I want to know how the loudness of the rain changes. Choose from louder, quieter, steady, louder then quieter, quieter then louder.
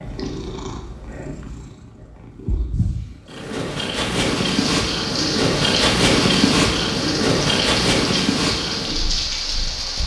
steady.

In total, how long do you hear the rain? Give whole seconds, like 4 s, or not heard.
6 s.